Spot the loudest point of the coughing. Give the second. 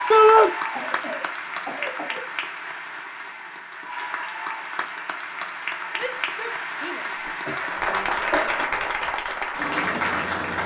8 s.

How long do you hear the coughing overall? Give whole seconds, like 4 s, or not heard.
3 s.